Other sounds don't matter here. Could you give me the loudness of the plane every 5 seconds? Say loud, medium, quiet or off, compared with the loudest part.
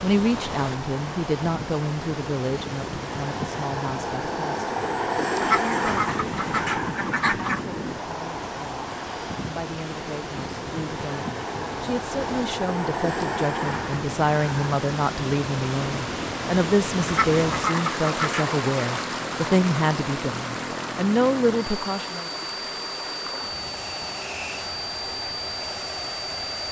loud, loud, loud, medium, medium, loud.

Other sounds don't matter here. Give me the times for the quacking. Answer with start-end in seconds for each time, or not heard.
5.4-7.6, 17.1-18.6.